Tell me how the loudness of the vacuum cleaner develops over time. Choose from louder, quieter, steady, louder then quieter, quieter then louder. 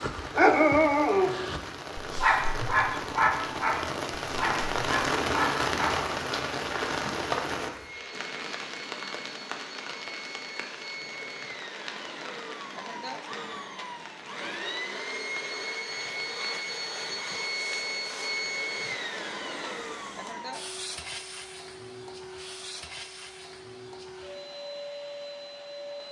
louder then quieter.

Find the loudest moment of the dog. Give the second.
1 s.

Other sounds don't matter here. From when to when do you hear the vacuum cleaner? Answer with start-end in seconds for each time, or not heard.
7.7-26.0.